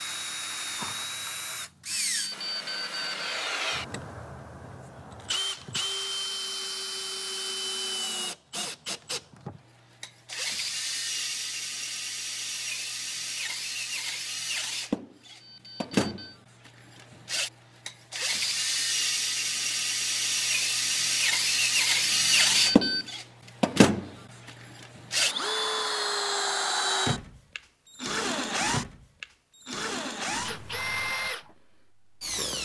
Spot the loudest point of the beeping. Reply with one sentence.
The loudest moment of the beeping is at 23 seconds.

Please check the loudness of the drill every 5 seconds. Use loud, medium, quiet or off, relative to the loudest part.
medium, medium, medium, medium, loud, loud, medium.